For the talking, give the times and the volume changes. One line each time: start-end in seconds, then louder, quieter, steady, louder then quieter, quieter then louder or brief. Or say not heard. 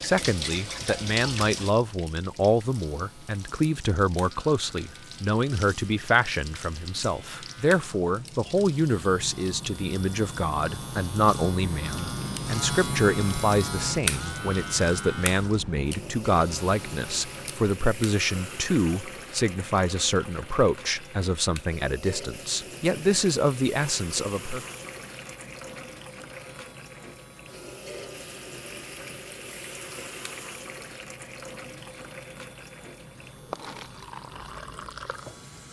0.0-24.6 steady.